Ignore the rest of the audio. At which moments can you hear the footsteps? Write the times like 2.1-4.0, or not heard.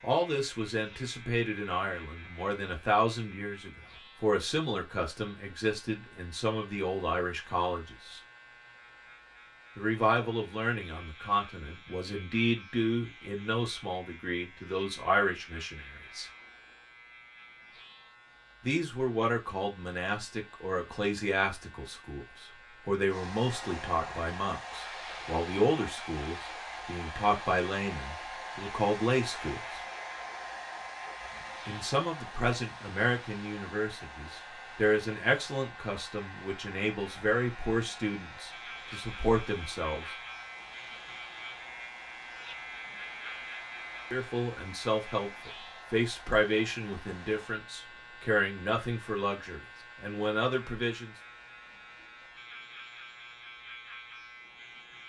not heard.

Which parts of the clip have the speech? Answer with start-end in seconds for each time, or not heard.
0.0-8.2, 9.8-16.2, 18.6-29.8, 31.6-40.0, 44.1-51.1.